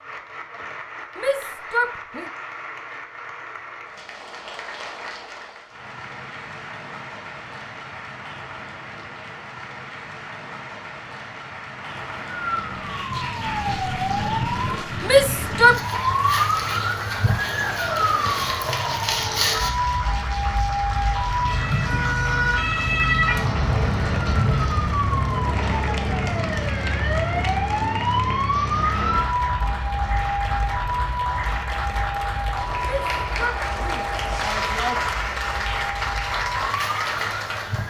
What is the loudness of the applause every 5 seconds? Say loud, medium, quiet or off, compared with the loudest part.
medium, medium, medium, medium, medium, medium, loud, loud.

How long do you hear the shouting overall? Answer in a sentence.
The shouting can be heard for 4 seconds in total.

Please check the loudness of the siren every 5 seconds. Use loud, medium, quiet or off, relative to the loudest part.
off, off, loud, loud, loud, loud, medium, medium.